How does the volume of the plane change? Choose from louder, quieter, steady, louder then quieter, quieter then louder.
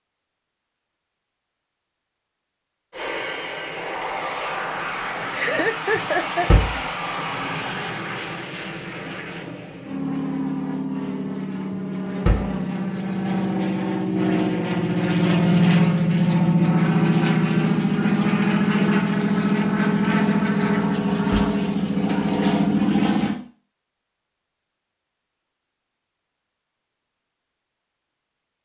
louder.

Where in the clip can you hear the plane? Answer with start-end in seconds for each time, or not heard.
2.9-23.4.